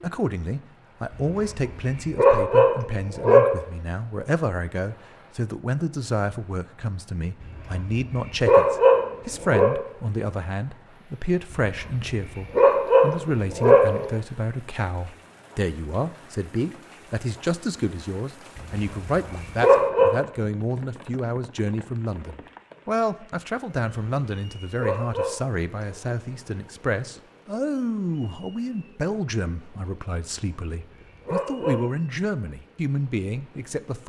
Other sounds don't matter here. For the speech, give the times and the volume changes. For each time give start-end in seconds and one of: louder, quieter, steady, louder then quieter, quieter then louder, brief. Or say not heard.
0.0-34.0 steady.